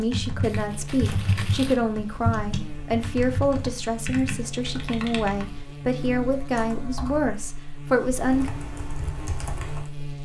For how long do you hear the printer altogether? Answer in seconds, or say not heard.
not heard.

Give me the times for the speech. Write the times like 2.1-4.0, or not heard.
0.0-8.5.